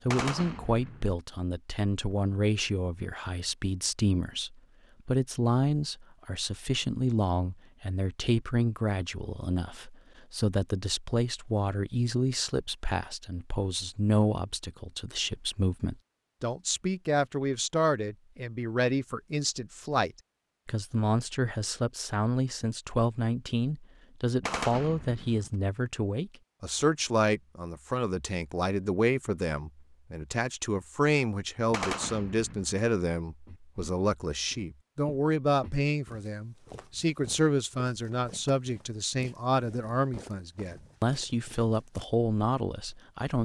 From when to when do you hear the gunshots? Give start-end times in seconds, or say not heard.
0.1-1.1, 24.4-25.5, 31.7-32.8.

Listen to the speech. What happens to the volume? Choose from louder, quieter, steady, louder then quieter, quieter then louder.
steady.